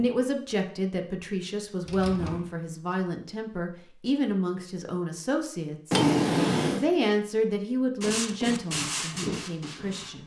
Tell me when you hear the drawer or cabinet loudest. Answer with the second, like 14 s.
6 s.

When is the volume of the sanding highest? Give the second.
9 s.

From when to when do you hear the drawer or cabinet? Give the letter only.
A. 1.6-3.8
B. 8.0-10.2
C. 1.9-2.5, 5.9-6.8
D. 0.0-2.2
C.